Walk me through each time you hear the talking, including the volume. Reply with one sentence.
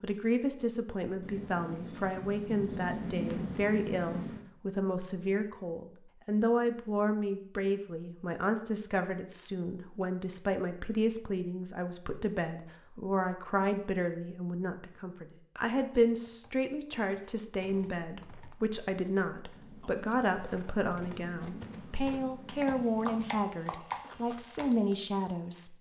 You can hear the talking from 0.0 to 25.7 s, at a steady volume.